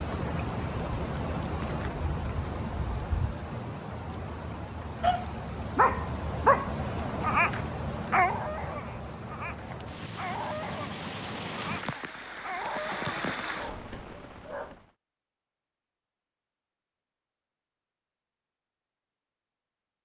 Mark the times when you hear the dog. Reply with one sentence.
You can hear the dog from 5.0 to 14.8 s.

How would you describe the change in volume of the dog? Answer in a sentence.
The volume of the dog goes down.